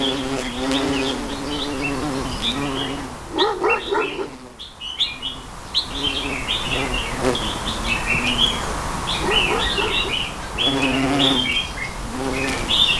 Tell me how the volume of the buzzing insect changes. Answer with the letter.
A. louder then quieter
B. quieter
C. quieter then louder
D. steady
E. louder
C.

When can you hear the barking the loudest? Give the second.
4 s.